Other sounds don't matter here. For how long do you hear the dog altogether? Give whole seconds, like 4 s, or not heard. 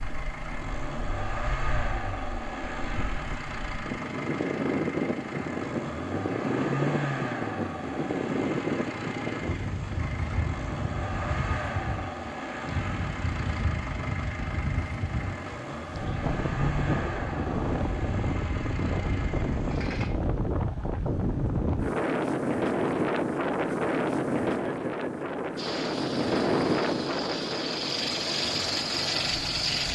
not heard.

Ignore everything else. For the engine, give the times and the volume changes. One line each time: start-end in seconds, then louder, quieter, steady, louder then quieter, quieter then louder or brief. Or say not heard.
0.0-20.1 steady
25.6-29.8 louder.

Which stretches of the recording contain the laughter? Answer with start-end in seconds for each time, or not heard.
24.6-25.5.